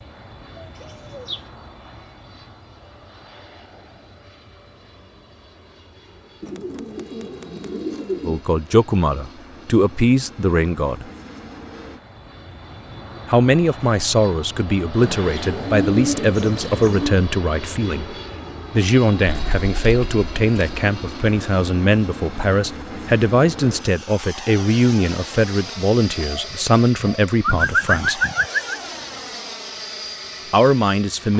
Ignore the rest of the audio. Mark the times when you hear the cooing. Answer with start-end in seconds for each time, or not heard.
0.6-1.4, 6.4-8.4, 15.0-17.2, 19.2-20.9, 26.1-28.8.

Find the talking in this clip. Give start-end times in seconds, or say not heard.
8.2-11.1, 13.2-28.2, 30.5-31.3.